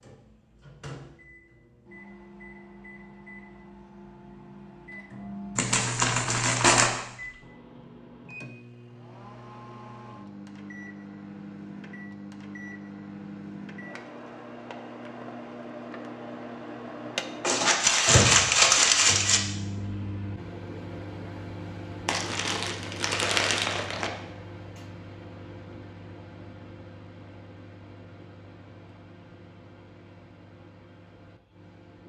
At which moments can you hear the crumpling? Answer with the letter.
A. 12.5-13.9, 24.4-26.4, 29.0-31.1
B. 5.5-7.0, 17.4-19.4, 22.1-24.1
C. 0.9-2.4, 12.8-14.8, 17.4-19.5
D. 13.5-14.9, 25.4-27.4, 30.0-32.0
B.